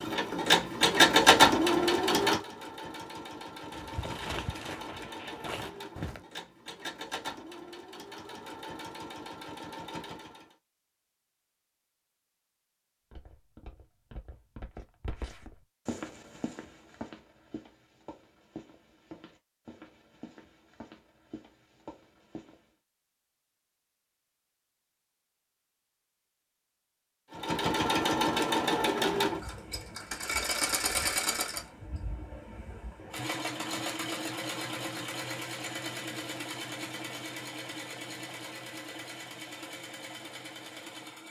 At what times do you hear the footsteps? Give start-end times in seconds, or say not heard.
3.7-6.2, 13.1-22.7.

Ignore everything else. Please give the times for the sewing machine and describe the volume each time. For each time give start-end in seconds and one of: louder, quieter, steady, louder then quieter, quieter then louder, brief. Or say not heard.
0.0-10.6 quieter
27.3-41.2 quieter.